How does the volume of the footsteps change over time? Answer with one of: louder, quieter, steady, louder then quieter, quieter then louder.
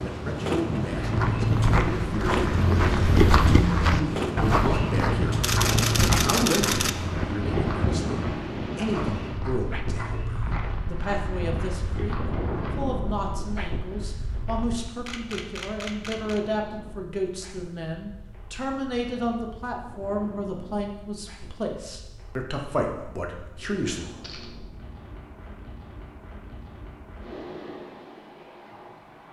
quieter.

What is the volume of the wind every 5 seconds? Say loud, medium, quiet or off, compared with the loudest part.
loud, loud, medium, quiet, quiet, quiet.